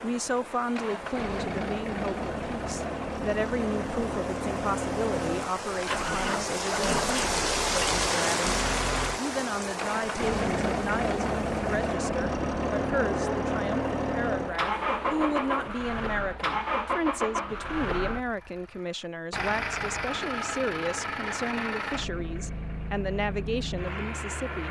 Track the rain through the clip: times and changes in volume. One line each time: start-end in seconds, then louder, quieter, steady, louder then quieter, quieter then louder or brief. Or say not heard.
0.0-15.8 louder then quieter.